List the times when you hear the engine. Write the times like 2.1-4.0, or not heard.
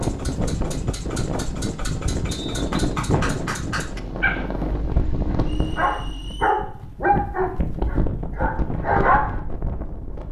0.0-6.5.